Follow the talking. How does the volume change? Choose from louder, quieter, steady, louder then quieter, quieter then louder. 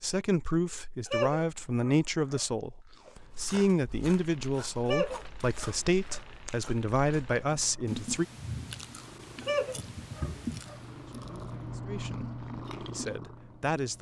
quieter.